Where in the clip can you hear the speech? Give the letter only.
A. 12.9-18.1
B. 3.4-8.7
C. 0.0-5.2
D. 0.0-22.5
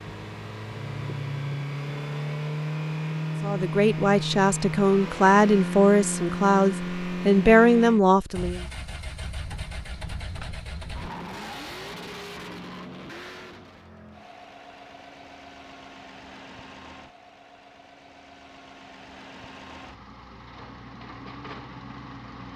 B.